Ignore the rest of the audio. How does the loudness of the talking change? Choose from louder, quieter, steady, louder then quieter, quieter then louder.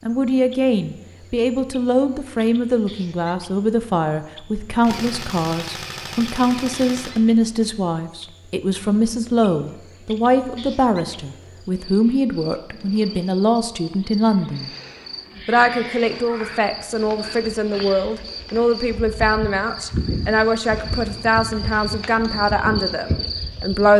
steady.